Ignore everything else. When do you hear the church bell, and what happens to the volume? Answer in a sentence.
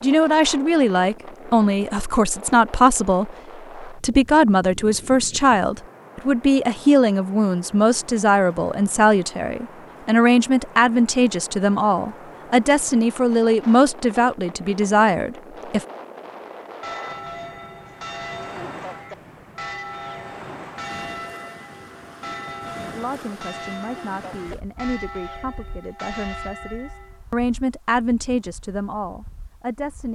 You can hear the church bell from 16.6 to 27.2 s, at a steady volume.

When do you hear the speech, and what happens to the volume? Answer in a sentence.
You can hear the speech from 0.0 to 15.8 s, at a steady volume; and from 22.9 to 30.0 s, getting louder then quieter.